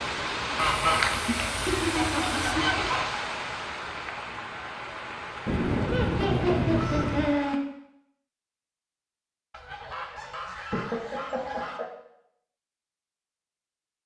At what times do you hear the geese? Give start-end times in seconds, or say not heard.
0.6-3.0, 5.5-7.3, 9.5-11.8.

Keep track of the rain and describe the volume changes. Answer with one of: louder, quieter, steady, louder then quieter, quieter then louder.
quieter.